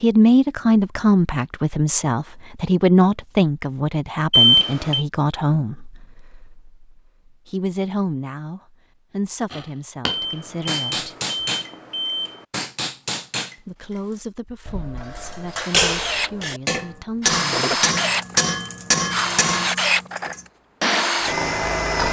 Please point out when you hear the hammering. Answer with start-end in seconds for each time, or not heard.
9.5-11.7, 12.5-13.6, 14.7-21.3.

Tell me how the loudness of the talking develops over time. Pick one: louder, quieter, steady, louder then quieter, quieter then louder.
quieter.